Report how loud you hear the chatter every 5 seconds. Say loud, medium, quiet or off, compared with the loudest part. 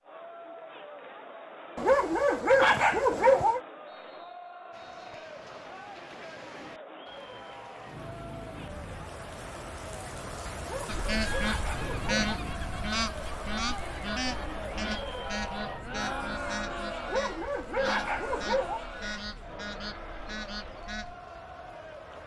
medium, medium, loud, loud, medium.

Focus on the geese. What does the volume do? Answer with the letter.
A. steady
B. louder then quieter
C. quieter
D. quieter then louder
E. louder
C.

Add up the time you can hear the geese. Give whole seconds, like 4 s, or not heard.
10 s.